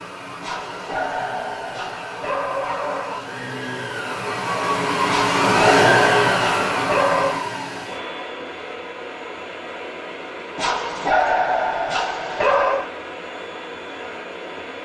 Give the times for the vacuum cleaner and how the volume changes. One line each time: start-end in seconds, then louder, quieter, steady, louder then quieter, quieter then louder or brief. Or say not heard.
0.0-14.8 louder then quieter.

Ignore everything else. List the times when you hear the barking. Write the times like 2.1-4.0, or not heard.
0.4-3.2, 5.0-7.4, 10.6-12.9.